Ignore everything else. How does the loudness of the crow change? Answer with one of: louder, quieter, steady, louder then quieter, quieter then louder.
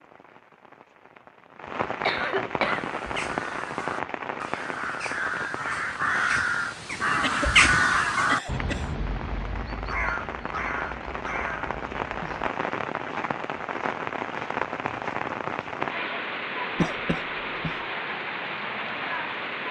louder then quieter.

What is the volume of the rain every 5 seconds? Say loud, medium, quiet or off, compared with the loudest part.
loud, medium, loud, loud.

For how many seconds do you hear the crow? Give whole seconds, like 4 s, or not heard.
10 s.